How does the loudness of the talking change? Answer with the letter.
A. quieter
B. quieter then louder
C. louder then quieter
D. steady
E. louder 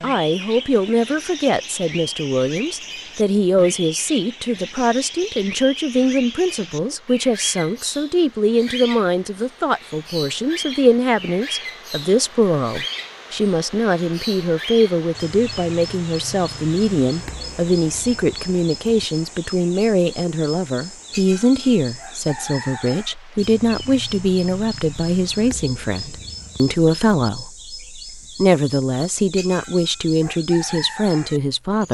D.